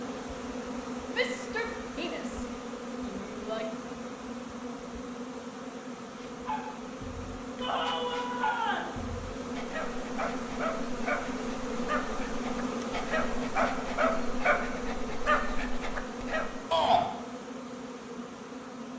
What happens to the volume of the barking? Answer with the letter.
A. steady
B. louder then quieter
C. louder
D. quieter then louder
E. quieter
C.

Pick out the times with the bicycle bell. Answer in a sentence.
The bicycle bell can't be heard in this clip.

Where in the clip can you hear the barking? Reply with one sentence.
The barking can be heard from 6.1 to 16.6 s.